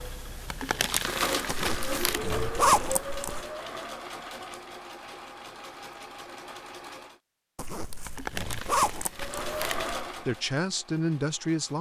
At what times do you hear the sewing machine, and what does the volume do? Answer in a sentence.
You can hear the sewing machine from 0.0 to 7.2 s, getting quieter; and briefly from 9.1 to 11.7 s.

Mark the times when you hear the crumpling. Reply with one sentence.
You can hear the crumpling from 0.5 to 2.2 s and from 8.1 to 9.9 s.